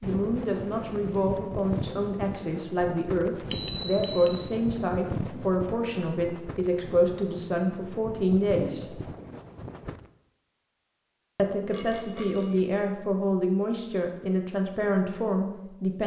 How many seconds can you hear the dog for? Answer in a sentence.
You can't hear the dog here.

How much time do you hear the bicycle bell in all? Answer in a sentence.
The bicycle bell can be heard for 2 seconds in total.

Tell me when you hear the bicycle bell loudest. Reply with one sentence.
The loudest moment of the bicycle bell is at 4 seconds.